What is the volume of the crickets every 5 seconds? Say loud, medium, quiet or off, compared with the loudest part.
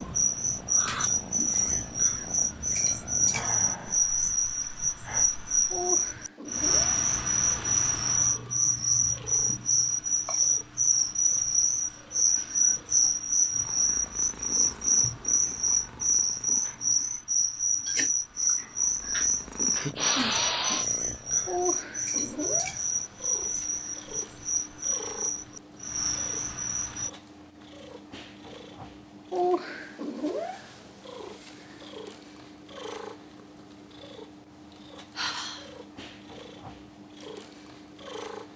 loud, loud, loud, loud, medium, medium, off, off.